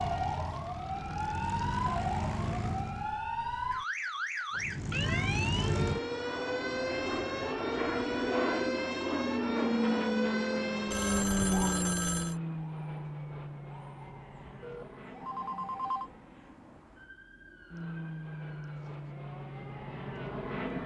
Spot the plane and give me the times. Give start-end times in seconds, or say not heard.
0.0-3.2, 4.5-20.8.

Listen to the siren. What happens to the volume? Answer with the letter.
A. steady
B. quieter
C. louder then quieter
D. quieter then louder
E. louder
B.